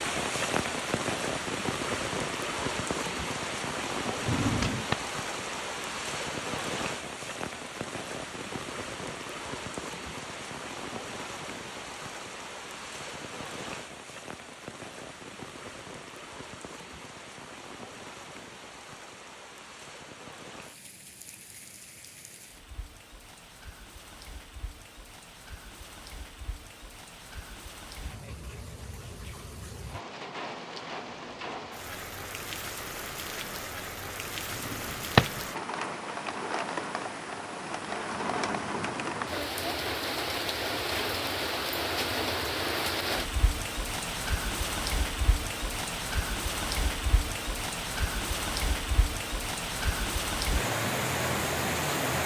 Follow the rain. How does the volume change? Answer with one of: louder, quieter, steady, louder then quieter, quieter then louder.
quieter then louder.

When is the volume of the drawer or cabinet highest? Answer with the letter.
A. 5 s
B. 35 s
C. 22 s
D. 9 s
B.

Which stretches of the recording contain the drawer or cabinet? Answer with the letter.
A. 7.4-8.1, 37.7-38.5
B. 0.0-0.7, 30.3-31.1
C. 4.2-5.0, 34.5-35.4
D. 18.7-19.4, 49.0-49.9
C.